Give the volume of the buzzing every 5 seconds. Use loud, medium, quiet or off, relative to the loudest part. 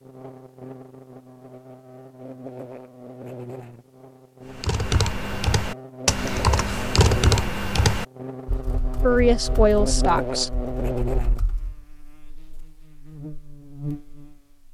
medium, loud, loud.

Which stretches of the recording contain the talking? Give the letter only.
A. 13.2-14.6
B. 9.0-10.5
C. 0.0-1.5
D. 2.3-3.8
B.